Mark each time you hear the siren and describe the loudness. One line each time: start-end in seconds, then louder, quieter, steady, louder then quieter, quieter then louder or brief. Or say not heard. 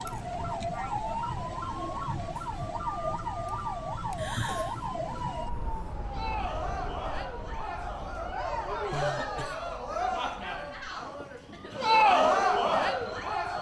0.0-13.5 quieter.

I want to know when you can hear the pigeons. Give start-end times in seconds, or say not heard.
not heard.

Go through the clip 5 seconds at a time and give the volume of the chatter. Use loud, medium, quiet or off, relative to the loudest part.
quiet, medium, loud.